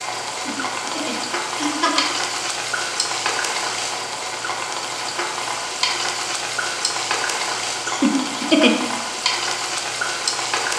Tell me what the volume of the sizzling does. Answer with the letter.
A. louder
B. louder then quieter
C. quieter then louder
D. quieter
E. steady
E.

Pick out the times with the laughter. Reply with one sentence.
You can hear the laughter from 0.3 to 2.0 s and from 7.8 to 8.8 s.